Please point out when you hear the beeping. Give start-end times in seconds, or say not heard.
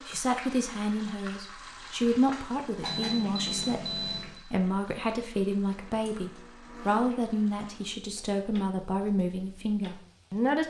2.8-4.5.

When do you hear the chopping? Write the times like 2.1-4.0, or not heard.
not heard.